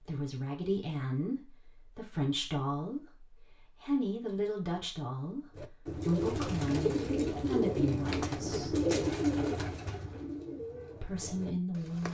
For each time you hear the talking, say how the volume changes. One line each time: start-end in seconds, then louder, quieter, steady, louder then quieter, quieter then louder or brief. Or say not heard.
0.0-8.8 steady
11.0-12.1 brief.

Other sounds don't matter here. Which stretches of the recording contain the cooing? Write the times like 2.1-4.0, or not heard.
5.5-12.1.